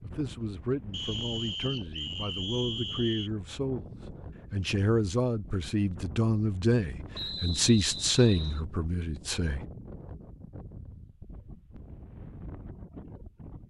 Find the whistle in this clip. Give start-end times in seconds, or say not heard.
0.9-3.3, 7.1-8.6.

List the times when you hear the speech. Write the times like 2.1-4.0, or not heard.
0.0-3.9, 4.5-9.7.